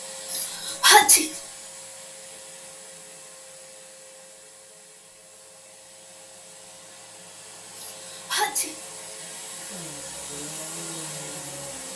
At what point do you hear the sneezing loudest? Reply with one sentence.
The volume of the sneezing peaks at 1 second.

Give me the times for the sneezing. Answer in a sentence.
The sneezing can be heard from 0.3 to 1.3 s and from 7.8 to 8.8 s.